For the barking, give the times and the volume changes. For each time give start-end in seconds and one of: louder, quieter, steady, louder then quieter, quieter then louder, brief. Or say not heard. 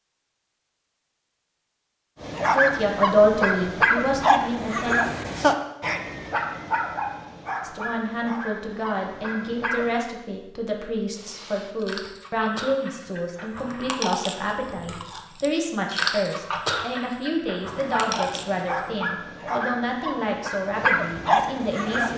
2.2-9.9 quieter
17.6-22.1 louder.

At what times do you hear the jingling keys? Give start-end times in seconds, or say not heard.
not heard.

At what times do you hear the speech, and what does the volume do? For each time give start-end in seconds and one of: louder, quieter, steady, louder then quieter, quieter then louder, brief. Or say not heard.
2.5-5.0 brief
7.6-22.1 steady.